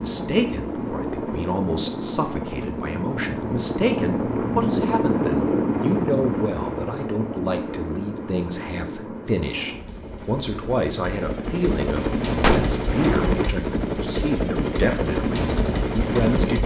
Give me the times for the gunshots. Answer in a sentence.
The gunshots can be heard from 12.4 to 13.4 s.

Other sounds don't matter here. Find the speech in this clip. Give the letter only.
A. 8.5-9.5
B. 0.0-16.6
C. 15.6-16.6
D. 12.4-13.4
B.